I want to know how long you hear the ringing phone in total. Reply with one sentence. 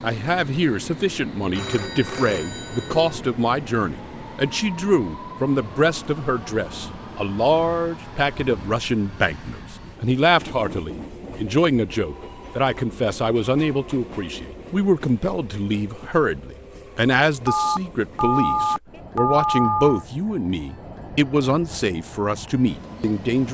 You can hear the ringing phone for 5 seconds altogether.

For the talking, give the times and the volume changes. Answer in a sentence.
You can hear the talking from 0.0 to 23.4 s, at a steady volume.